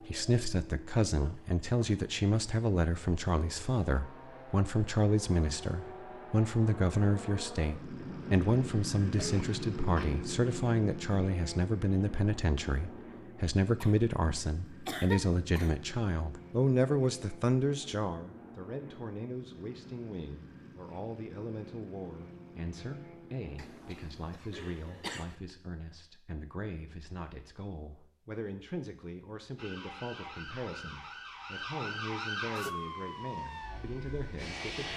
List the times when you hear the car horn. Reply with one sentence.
The car horn can't be heard in this clip.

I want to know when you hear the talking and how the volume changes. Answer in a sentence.
The talking can be heard from 0.0 to 34.9 s, getting quieter.